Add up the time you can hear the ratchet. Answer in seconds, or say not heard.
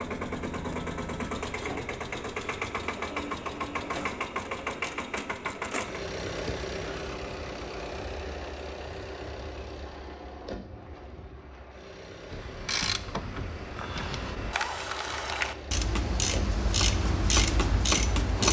6 s.